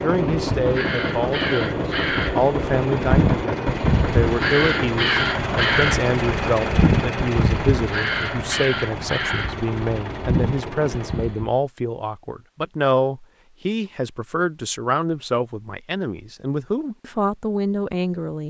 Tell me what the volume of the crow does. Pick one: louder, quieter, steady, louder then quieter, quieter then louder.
louder then quieter.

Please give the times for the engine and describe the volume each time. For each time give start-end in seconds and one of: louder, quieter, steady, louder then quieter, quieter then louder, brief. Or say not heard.
0.0-11.4 quieter.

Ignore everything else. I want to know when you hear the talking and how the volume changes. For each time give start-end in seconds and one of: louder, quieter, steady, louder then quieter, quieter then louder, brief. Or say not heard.
0.0-18.4 steady.